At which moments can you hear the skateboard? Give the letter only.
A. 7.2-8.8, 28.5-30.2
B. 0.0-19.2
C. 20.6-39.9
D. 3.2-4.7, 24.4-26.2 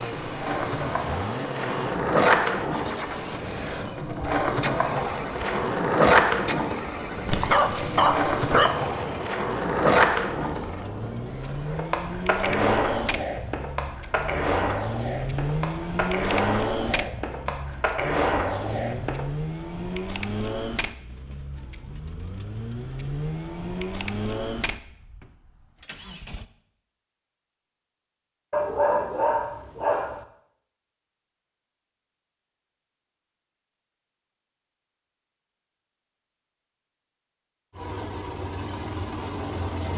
B.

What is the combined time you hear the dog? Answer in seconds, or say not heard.
3 s.